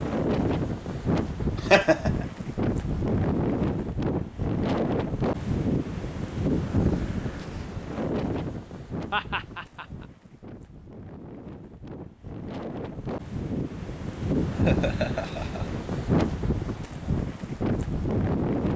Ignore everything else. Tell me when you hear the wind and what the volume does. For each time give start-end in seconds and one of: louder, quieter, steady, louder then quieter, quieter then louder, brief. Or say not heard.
0.0-18.7 quieter then louder.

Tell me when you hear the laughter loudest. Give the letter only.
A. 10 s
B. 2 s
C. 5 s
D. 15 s
B.